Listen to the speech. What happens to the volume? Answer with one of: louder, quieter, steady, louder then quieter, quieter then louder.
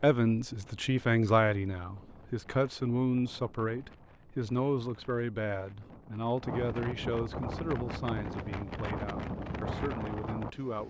quieter.